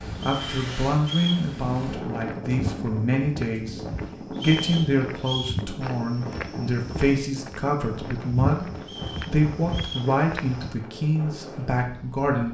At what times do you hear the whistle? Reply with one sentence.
The whistle can be heard from 0.1 to 1.4 s, from 4.3 to 5.5 s and from 8.8 to 10.1 s.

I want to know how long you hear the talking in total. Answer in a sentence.
The talking can be heard for 12 seconds in total.